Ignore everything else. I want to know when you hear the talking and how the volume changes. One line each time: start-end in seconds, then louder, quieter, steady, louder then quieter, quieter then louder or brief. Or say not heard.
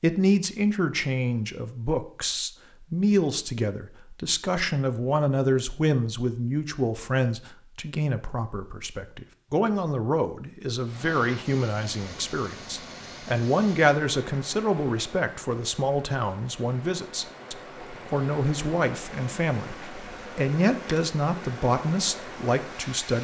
0.0-23.2 steady.